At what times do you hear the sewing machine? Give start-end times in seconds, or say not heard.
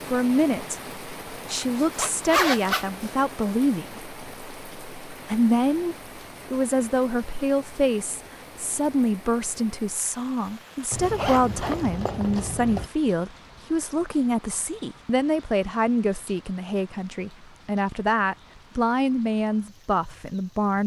not heard.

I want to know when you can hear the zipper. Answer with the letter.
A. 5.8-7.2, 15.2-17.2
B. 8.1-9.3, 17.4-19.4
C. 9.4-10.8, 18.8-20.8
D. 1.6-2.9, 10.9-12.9
D.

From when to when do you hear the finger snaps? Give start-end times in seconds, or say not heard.
not heard.